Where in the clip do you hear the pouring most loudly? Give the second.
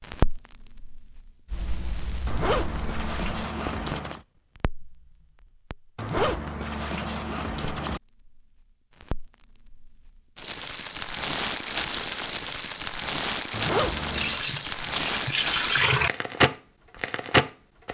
16 s.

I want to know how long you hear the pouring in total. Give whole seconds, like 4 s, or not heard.
2 s.